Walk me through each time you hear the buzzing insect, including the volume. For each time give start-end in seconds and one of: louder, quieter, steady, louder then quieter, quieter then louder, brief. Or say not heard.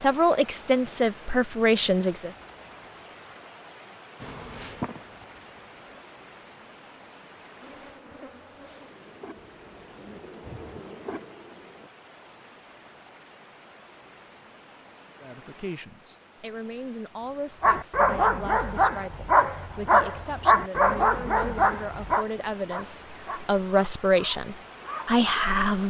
4.2-6.0 brief
7.6-11.9 louder.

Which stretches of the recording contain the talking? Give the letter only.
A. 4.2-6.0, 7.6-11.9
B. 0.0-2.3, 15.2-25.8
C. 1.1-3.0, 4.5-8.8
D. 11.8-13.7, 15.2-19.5
B.